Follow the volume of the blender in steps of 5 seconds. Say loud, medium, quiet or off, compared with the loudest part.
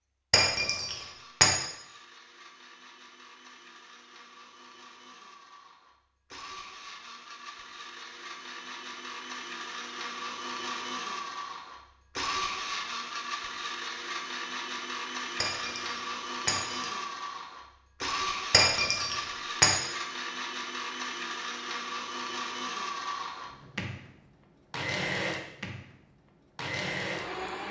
quiet, medium, loud, loud, loud, loud.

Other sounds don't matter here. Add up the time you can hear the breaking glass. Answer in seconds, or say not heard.
4 s.